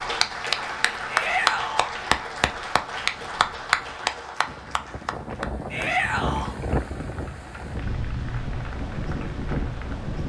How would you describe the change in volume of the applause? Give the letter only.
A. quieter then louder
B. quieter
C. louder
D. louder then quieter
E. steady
B.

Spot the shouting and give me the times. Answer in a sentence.
The shouting can be heard from 1.1 to 1.9 s and from 5.7 to 6.5 s.